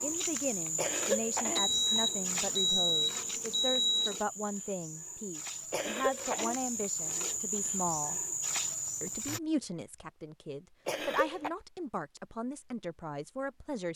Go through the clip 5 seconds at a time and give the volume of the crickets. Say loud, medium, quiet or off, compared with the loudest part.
loud, loud, off.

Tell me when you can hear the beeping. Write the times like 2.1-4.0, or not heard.
1.6-4.2.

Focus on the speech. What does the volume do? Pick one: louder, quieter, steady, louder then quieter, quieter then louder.
steady.